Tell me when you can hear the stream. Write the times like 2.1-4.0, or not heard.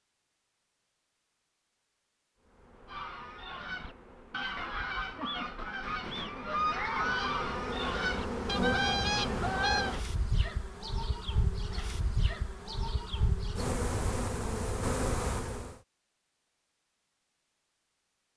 not heard.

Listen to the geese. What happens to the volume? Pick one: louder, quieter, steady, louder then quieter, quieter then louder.
louder.